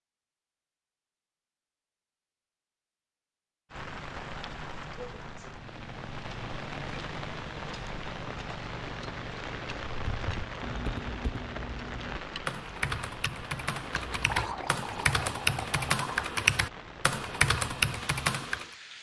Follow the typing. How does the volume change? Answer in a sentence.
The volume of the typing goes up.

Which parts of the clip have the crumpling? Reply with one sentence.
The crumpling can be heard from 13.9 to 14.7 s.